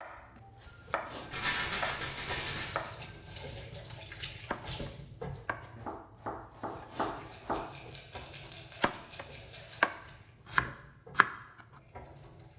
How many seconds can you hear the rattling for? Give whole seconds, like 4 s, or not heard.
4 s.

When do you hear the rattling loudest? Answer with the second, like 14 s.
2 s.